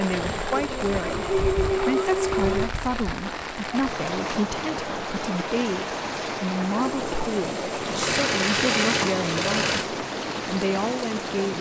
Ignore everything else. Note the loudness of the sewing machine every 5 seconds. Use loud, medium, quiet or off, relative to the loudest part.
loud, loud, off.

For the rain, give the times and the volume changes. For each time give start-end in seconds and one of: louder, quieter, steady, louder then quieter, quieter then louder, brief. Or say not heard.
0.0-11.5 steady.